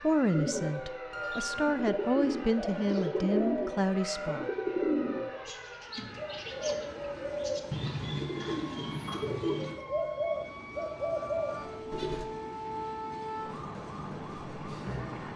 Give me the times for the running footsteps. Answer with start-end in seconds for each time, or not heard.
not heard.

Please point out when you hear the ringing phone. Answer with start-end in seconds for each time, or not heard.
1.1-1.8.